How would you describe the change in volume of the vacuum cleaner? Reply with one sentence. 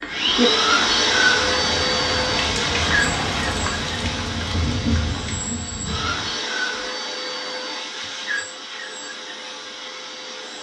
The volume of the vacuum cleaner goes down.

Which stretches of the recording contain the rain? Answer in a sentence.
You can hear the rain from 0.0 to 6.3 s.